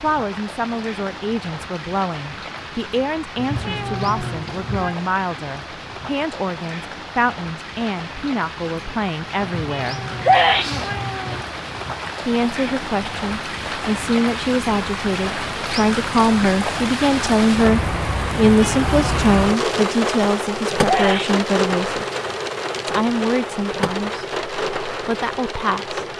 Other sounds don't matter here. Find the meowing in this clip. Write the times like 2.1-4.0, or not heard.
3.4-5.0, 9.4-11.4, 18.3-19.2.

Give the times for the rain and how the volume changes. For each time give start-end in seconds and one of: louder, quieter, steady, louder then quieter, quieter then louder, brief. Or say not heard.
0.0-26.1 louder.